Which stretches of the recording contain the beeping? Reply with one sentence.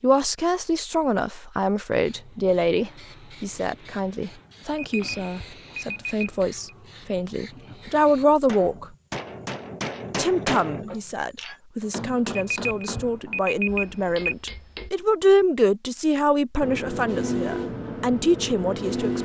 The beeping can be heard from 4.8 to 6.8 s and from 12.3 to 14.3 s.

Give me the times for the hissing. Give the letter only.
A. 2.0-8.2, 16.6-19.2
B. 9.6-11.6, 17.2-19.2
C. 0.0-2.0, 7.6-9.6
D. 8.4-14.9
A.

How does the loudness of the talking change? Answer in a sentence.
The volume of the talking stays about the same.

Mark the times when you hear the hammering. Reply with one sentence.
The hammering can be heard from 8.4 to 14.9 s.